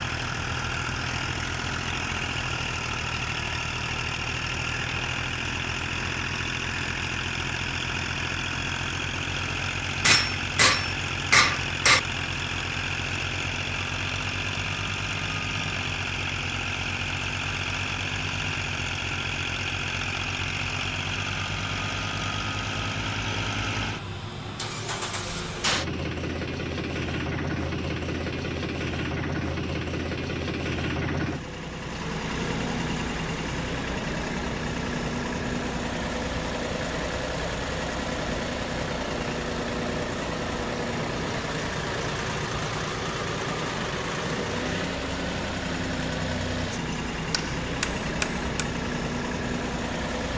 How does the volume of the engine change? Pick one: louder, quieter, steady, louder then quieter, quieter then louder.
steady.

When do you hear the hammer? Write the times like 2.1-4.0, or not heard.
10.1-12.0, 46.9-48.5.